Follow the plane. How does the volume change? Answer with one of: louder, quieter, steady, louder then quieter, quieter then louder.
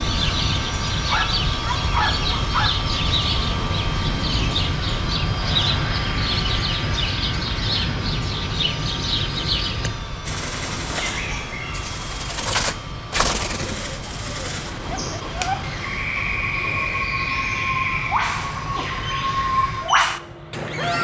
quieter.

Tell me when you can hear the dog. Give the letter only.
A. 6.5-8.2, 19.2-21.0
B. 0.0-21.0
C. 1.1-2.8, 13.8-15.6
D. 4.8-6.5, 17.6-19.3
C.